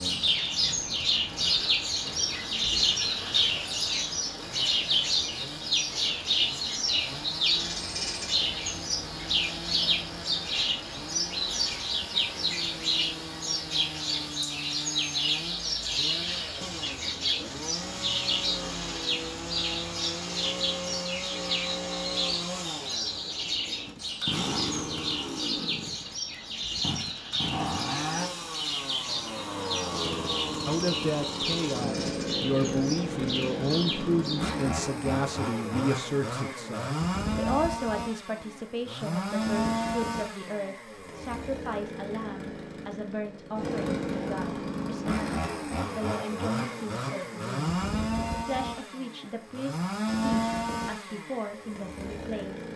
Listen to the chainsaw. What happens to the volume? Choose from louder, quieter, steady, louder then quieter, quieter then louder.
louder.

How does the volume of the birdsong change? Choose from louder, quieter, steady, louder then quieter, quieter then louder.
quieter.